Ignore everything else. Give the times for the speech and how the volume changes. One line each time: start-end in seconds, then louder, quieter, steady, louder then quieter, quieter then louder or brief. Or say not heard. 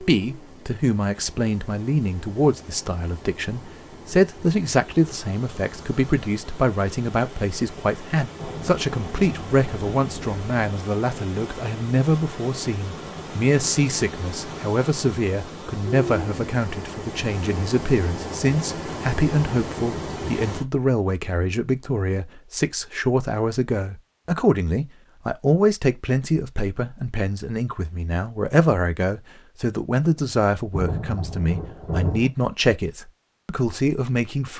0.0-34.5 steady.